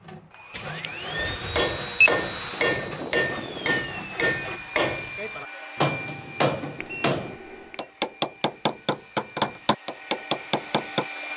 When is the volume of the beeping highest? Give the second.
2 s.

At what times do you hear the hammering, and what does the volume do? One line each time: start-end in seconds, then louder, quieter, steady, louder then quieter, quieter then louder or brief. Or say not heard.
1.1-11.1 steady.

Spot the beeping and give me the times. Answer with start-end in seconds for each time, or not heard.
0.5-2.1, 6.8-7.8.